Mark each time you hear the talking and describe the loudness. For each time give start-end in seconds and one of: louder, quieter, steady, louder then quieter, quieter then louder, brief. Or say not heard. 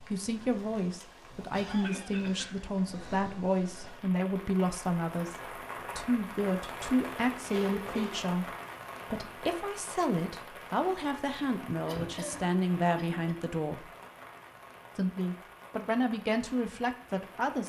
0.1-13.9 steady
14.9-17.6 brief.